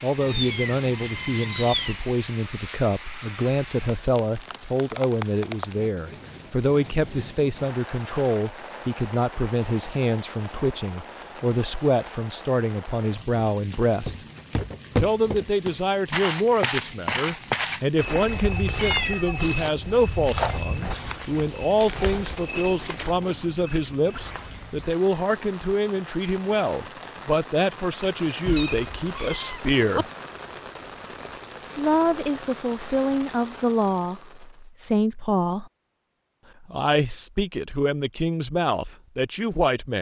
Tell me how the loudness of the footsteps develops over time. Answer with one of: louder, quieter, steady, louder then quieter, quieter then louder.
quieter.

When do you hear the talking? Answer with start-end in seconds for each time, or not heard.
0.0-14.2, 14.9-30.1, 31.8-35.7, 36.6-39.9.